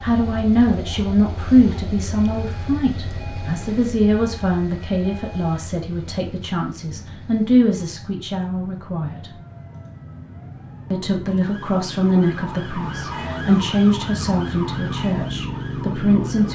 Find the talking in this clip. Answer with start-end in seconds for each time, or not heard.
0.0-9.4, 10.9-16.5.